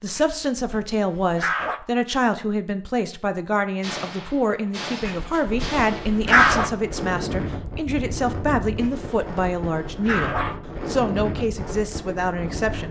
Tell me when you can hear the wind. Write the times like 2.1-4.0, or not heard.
5.4-12.8.